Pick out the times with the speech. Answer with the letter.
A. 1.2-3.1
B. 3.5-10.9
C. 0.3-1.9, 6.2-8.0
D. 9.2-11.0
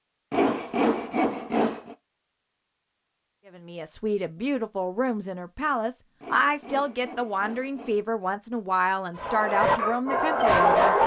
B.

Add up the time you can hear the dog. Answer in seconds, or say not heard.
2 s.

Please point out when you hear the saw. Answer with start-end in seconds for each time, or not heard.
0.3-1.9, 6.2-8.0.